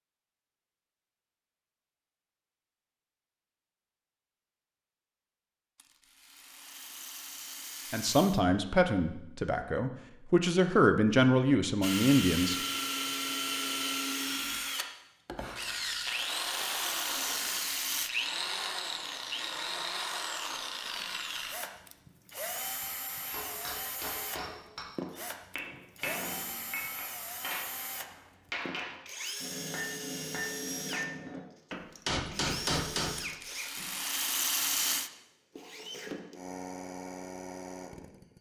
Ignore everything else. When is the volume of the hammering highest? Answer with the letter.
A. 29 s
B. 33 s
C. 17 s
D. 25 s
B.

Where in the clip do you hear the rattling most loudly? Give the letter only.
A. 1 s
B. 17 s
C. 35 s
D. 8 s
C.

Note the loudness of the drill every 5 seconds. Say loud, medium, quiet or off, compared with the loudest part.
off, off, loud, loud, medium, medium, medium, medium.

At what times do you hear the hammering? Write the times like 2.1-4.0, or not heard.
23.2-33.9.